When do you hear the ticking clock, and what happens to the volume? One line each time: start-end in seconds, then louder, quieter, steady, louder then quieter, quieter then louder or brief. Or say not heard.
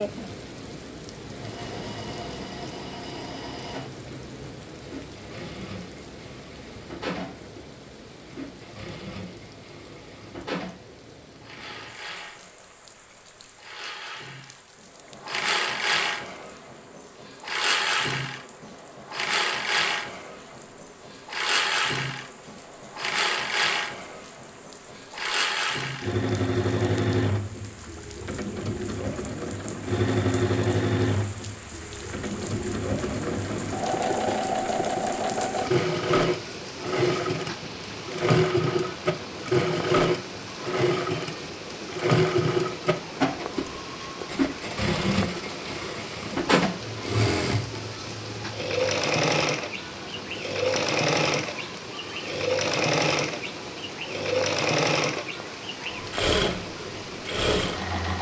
not heard.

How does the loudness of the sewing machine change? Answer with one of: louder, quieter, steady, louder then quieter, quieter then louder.
louder.